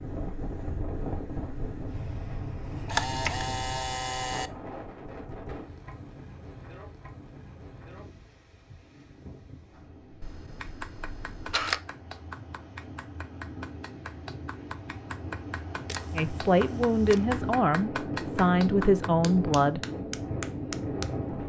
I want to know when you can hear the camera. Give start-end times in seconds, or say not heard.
2.6-4.5, 10.2-11.8, 15.8-17.2.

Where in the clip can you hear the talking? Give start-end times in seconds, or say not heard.
16.1-19.8.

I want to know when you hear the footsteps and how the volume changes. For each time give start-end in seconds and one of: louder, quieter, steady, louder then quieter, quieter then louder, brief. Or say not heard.
not heard.